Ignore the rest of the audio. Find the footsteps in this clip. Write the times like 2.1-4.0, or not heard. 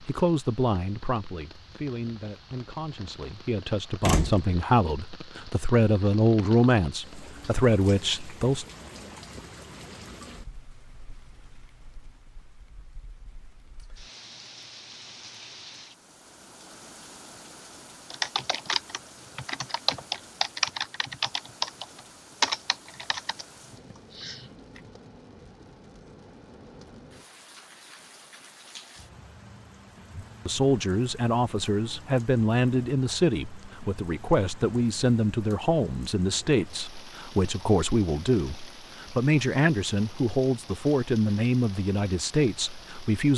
not heard.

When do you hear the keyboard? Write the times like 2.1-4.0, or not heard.
18.1-24.8.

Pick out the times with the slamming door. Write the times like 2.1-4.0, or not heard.
4.0-4.5.